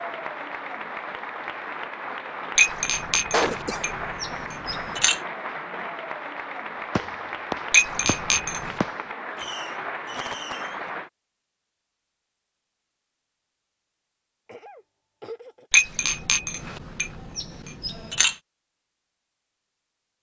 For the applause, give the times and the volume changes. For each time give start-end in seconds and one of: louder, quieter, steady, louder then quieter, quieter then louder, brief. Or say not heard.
0.0-11.1 steady.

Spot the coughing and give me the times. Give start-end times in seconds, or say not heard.
3.3-4.0, 14.4-15.7.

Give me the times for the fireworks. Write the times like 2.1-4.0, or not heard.
7.0-10.9.